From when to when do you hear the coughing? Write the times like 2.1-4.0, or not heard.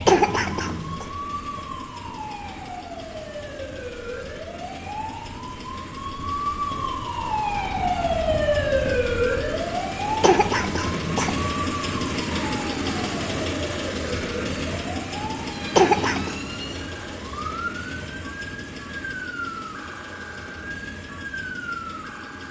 0.1-1.1, 10.2-11.4, 15.8-16.4.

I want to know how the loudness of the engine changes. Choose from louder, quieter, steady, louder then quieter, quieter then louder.
louder then quieter.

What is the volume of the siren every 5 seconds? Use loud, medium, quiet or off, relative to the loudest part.
medium, loud, medium, medium, medium.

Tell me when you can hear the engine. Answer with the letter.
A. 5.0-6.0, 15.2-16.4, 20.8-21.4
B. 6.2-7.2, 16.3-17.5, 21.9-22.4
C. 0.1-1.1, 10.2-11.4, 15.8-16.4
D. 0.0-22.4
D.